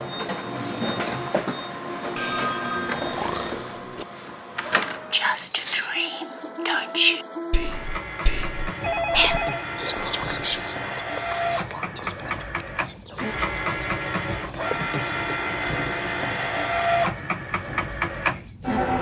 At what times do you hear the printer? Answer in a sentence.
The printer can be heard from 0.0 to 18.9 s.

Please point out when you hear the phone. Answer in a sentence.
You can hear the phone from 2.1 to 4.0 s, from 8.8 to 9.7 s and from 15.8 to 16.5 s.